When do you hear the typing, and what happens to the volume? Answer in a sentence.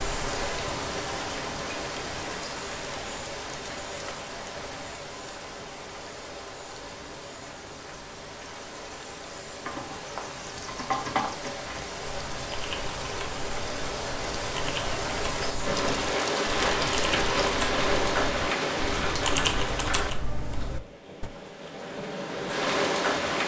You can hear the typing from 9.6 to 21.3 s, getting quieter then louder.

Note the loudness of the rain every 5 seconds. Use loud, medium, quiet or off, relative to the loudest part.
medium, quiet, medium, loud, loud.